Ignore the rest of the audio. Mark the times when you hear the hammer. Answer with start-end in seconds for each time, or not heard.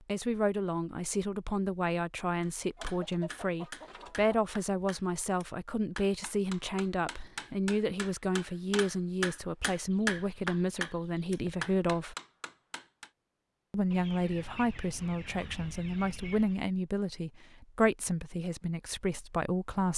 2.4-13.1.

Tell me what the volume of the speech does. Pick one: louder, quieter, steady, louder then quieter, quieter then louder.
steady.